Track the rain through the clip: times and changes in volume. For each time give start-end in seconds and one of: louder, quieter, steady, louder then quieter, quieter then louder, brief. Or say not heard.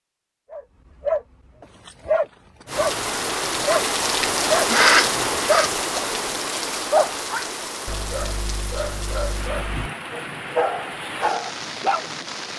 2.6-12.5 quieter.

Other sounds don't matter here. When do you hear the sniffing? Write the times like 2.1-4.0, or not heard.
4.7-5.7.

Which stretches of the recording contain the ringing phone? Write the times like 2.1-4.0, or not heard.
not heard.